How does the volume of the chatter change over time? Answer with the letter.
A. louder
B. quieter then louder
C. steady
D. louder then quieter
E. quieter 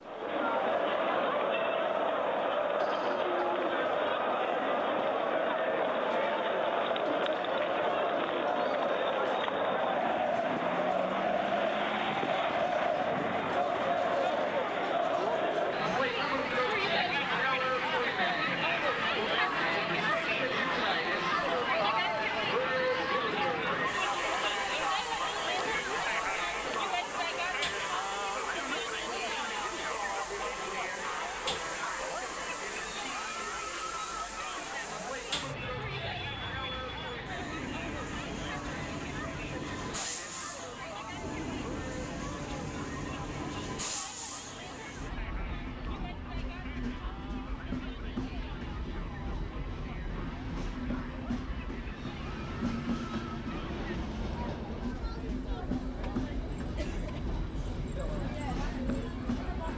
E.